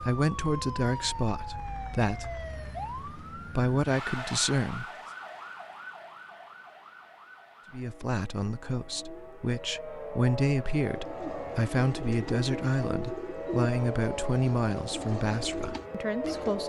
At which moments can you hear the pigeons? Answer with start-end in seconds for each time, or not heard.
10.9-16.6.